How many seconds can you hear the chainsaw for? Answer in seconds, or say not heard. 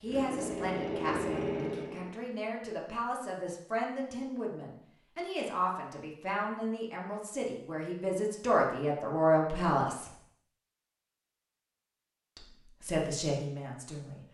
2 s.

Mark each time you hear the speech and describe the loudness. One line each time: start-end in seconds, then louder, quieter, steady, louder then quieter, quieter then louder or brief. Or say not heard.
0.0-10.1 louder
12.3-14.2 brief.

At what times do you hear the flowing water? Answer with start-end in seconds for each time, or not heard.
not heard.